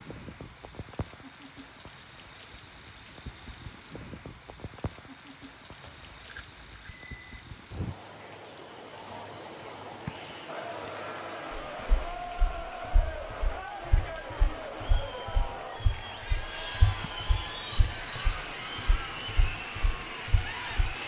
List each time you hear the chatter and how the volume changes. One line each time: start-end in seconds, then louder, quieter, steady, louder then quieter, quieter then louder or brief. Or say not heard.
10.4-21.0 steady.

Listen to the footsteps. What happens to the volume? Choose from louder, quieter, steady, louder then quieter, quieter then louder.
louder then quieter.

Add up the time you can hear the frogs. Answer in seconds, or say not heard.
not heard.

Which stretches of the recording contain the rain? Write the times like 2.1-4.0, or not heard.
0.0-21.0.